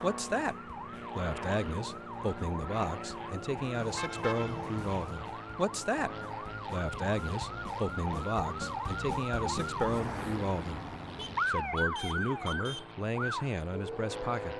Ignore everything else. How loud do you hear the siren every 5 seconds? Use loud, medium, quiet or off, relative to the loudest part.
medium, loud, loud.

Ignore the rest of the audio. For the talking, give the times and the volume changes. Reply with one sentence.
The talking can be heard briefly from 0.0 to 0.6 s; and from 1.1 to 14.5 s, at a steady volume.